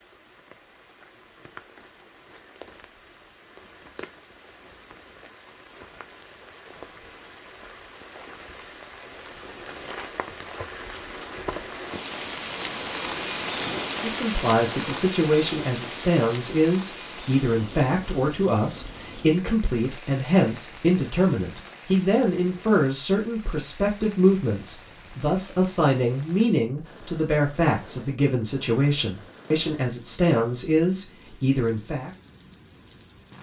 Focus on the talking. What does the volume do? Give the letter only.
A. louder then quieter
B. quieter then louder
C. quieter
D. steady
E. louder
D.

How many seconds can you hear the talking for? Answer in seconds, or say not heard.
18 s.